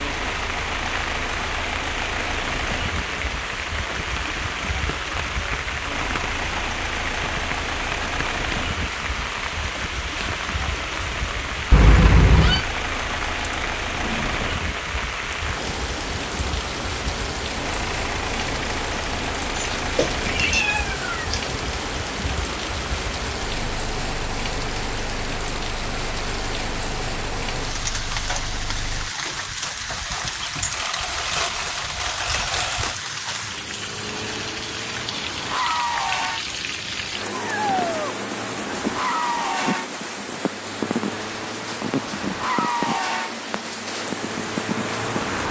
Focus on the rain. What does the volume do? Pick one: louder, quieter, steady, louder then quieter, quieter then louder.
steady.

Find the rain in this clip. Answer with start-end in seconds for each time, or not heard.
0.0-45.4.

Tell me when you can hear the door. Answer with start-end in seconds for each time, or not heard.
not heard.